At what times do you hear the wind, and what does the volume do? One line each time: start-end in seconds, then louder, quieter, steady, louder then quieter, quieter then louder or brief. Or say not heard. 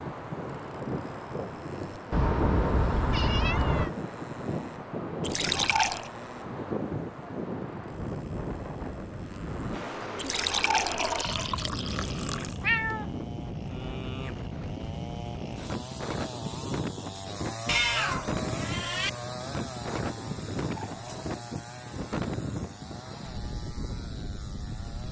0.0-25.0 steady.